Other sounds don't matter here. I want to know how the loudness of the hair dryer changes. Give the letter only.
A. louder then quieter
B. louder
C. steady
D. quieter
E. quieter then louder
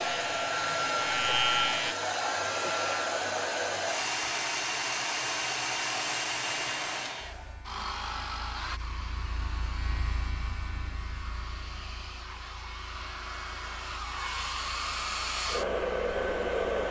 E.